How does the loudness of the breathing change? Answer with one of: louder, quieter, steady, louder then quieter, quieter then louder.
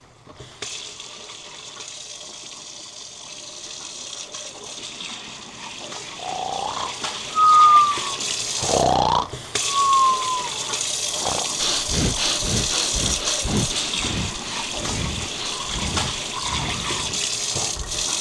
quieter.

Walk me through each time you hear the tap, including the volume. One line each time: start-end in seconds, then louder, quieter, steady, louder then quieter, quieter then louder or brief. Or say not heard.
0.0-18.1 louder.